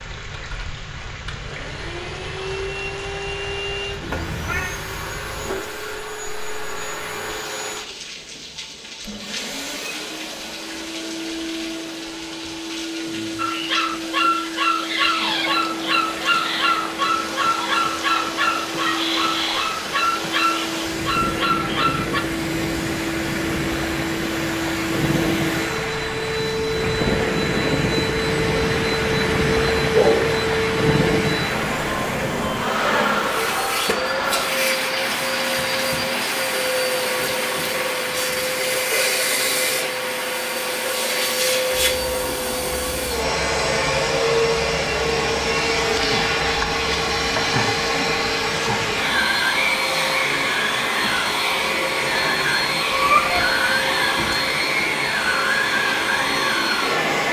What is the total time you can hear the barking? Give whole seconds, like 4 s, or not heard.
9 s.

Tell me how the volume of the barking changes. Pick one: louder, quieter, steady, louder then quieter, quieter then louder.
steady.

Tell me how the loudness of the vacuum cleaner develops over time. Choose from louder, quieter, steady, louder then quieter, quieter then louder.
louder.